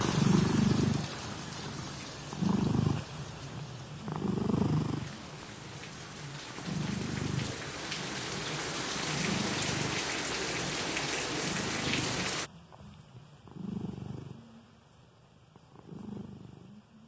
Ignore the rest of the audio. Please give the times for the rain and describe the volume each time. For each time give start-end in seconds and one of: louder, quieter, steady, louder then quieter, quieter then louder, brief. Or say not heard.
0.0-12.5 quieter then louder.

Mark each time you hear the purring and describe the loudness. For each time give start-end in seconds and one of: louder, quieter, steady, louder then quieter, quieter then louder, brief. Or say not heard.
0.0-17.0 quieter.